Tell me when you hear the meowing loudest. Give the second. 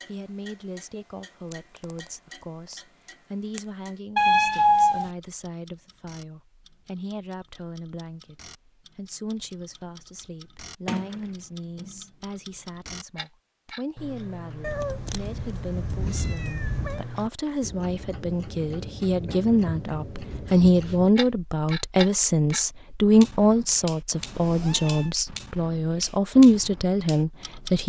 5 s.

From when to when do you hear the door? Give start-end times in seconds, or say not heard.
10.8-12.1.